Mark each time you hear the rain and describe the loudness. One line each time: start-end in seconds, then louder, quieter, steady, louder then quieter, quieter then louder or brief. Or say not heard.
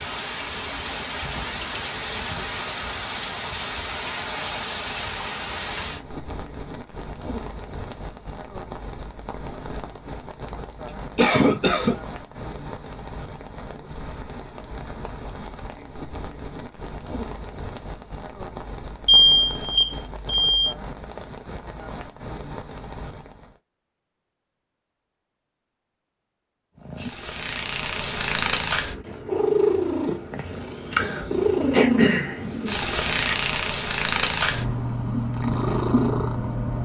0.0-23.6 steady.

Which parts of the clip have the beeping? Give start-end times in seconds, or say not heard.
19.1-20.8.